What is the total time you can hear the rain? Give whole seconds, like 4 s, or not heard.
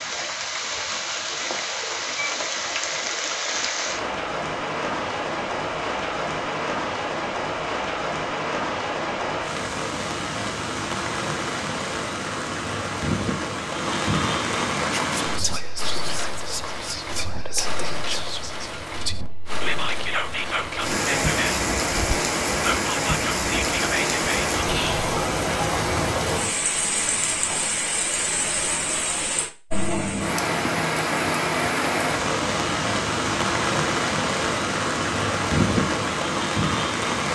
37 s.